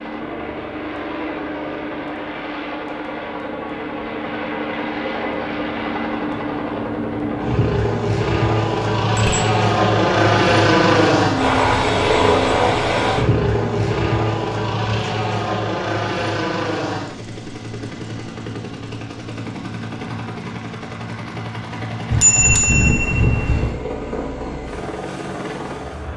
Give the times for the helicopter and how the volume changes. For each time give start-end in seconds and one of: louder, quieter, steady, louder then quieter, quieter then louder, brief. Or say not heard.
0.0-26.1 louder then quieter.